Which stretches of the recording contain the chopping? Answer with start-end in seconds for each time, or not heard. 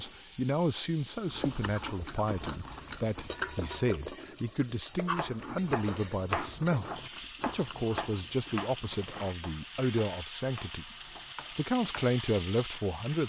5.2-12.1.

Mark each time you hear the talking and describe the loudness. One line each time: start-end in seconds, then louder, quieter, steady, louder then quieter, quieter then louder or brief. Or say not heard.
0.0-10.9 steady
11.5-13.2 brief.